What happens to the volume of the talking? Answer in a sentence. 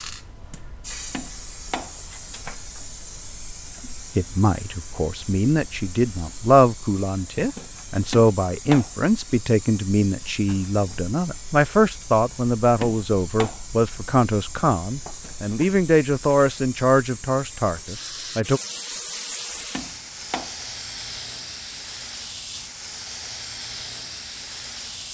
The volume of the talking stays about the same.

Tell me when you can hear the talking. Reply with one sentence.
The talking can be heard from 3.9 to 18.6 s.